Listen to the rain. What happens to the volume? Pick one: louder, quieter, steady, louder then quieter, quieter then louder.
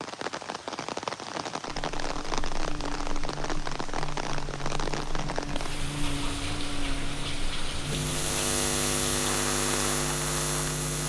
steady.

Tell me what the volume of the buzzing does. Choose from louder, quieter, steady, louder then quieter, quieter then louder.
louder.